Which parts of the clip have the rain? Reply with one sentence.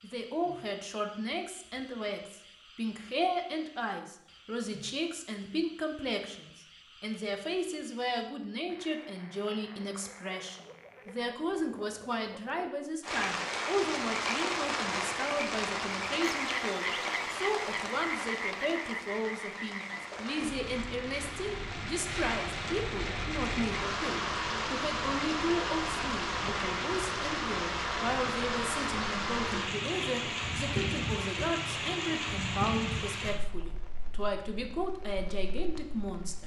You can hear the rain from 13.0 to 36.4 s.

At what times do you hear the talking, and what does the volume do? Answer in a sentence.
The talking can be heard from 0.0 to 36.4 s, at a steady volume.